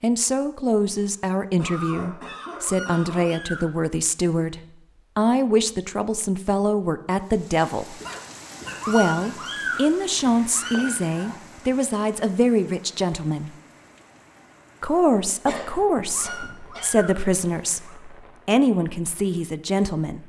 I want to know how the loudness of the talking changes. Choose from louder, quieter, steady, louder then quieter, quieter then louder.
steady.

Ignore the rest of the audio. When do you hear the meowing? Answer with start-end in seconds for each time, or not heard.
2.6-3.6, 8.8-11.3, 16.1-17.9.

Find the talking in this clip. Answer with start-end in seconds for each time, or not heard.
0.0-8.0, 8.8-13.5, 14.8-20.2.